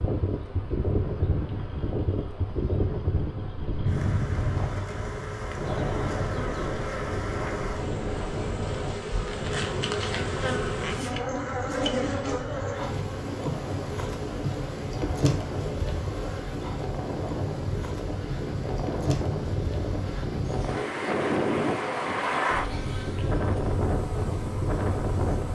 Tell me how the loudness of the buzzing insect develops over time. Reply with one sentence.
The volume of the buzzing insect goes up, then down.